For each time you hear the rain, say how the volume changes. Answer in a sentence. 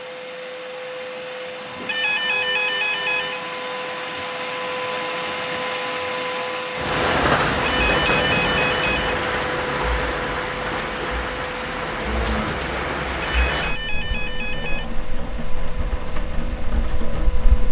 The rain can be heard from 6.8 to 17.6 s, getting quieter.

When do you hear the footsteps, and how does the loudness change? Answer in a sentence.
You can't hear the footsteps here.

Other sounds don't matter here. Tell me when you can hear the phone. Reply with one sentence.
You can hear the phone from 1.9 to 3.4 s, from 7.7 to 9.2 s and from 13.2 to 14.9 s.